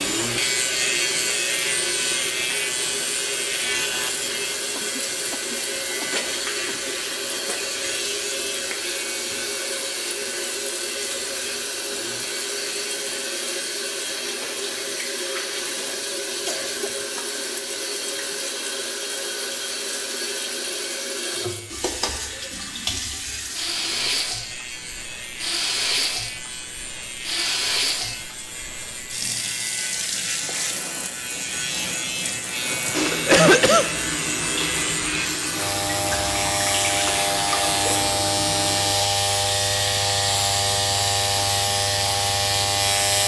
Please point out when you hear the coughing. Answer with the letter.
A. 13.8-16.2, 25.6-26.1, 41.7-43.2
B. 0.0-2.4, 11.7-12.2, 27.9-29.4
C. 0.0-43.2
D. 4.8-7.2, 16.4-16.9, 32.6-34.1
D.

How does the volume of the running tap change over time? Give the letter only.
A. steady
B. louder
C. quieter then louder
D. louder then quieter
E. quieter
A.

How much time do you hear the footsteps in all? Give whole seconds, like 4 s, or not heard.
not heard.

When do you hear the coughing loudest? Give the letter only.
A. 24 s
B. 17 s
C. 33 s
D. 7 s
C.